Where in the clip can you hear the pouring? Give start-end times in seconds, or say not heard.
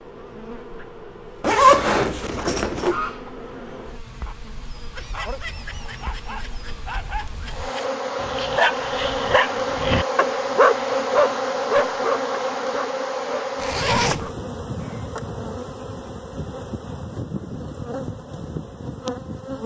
not heard.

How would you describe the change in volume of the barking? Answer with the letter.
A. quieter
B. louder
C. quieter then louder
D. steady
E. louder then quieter
E.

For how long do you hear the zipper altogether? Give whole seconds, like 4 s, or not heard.
2 s.